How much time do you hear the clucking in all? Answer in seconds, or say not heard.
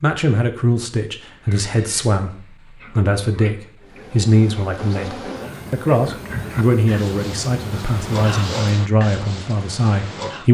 not heard.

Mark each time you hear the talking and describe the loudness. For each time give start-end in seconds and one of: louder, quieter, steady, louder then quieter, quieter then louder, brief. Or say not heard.
0.0-10.4 steady.